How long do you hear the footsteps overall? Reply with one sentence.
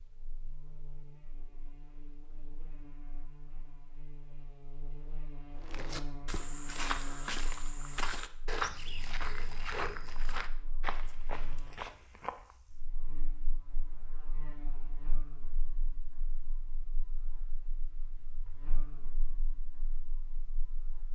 You can hear the footsteps for 7 seconds altogether.